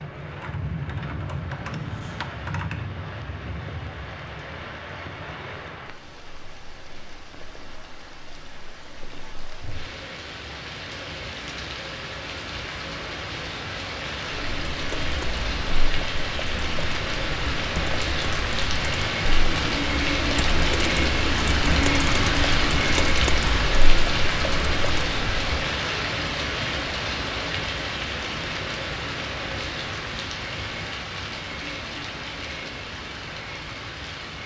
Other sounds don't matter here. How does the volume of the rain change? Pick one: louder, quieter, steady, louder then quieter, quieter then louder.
louder then quieter.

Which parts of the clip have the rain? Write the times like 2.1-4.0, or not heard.
0.0-34.4.